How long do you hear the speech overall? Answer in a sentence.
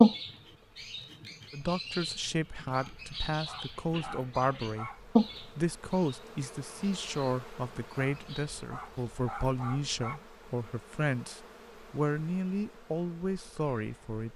The speech can be heard for 13 seconds in total.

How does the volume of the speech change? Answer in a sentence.
The loudness of the speech stays about the same.